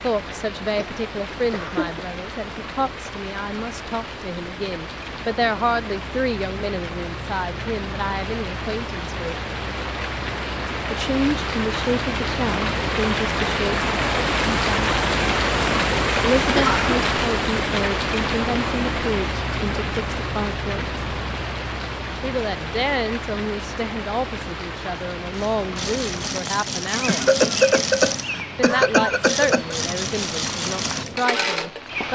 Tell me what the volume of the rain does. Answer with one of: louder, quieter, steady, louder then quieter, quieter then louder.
louder then quieter.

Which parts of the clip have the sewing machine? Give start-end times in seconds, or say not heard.
25.3-32.1.